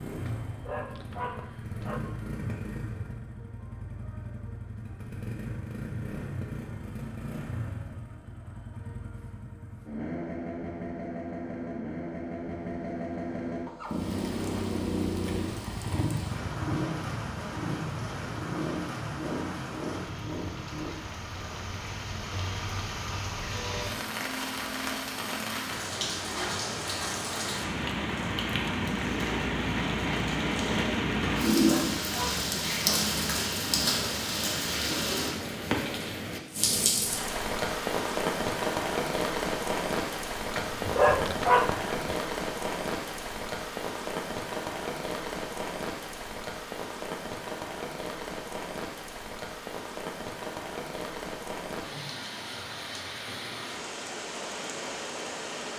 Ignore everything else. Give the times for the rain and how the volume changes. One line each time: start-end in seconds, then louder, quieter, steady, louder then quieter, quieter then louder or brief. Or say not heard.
13.8-55.7 louder then quieter.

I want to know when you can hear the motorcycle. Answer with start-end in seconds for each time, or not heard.
0.0-20.9.